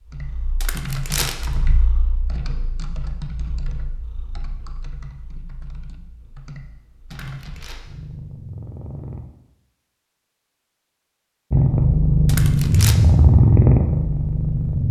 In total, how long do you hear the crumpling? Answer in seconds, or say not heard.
2 s.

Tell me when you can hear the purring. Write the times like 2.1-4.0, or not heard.
0.1-9.2, 11.5-14.8.